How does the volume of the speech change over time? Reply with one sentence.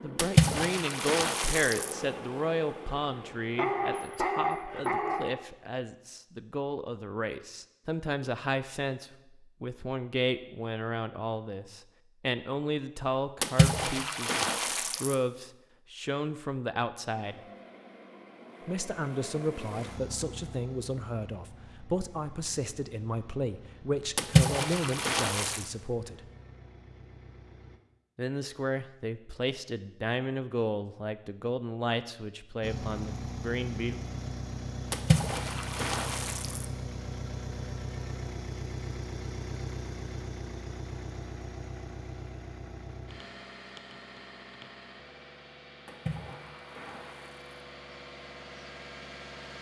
The loudness of the speech stays about the same.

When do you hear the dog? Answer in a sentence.
The dog can be heard from 3.5 to 5.3 s.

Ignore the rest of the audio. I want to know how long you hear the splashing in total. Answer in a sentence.
The splashing can be heard for 8 seconds in total.